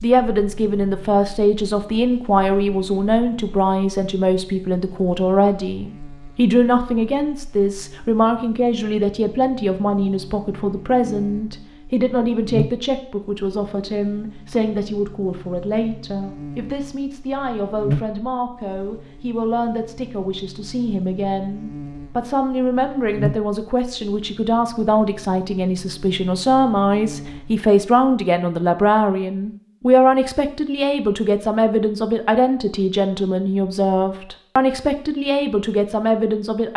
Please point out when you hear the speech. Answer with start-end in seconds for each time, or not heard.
0.0-36.7.